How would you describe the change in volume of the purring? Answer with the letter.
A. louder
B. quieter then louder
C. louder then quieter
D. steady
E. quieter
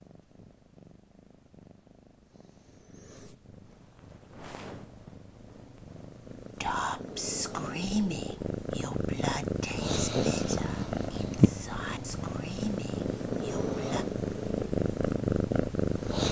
A.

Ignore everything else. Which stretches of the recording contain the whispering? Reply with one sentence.
The whispering can be heard from 6.5 to 14.1 s.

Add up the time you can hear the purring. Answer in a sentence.
The purring can be heard for 16 seconds in total.